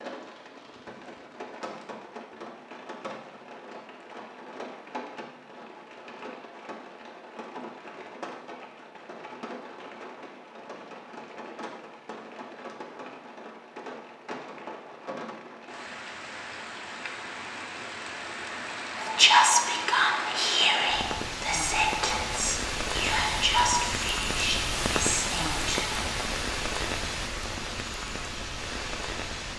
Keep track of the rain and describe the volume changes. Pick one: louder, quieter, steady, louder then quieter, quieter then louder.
louder.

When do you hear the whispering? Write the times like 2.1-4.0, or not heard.
19.0-26.0.